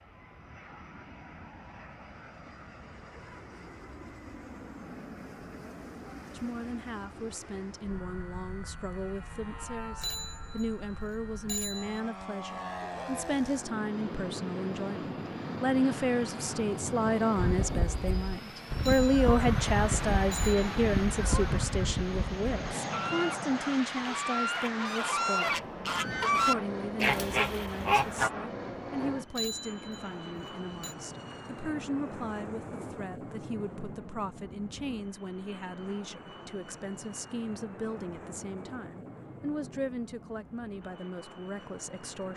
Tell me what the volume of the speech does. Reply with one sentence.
The loudness of the speech goes up, then down.